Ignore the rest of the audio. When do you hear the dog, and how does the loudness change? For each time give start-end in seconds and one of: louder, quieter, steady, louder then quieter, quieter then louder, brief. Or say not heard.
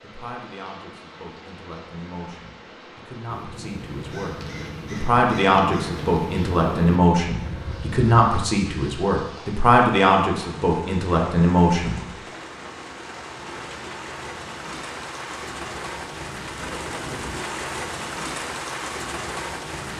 not heard.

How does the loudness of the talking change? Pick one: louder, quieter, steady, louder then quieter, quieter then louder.
louder.